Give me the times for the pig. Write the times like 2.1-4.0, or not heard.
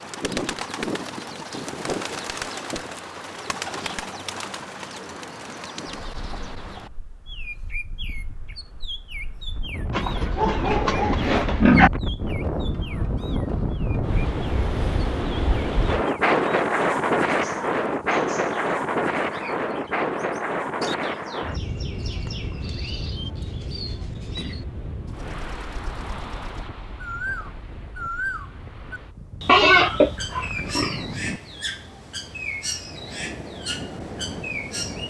9.9-11.9, 29.4-31.0.